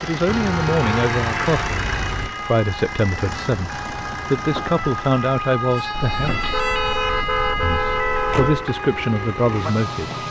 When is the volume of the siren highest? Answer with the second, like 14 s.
7 s.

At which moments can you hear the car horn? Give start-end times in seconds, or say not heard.
0.2-2.3, 5.9-8.7.